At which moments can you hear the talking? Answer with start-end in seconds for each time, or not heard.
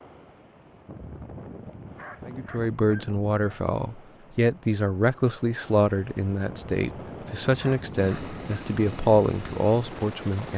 2.2-10.5.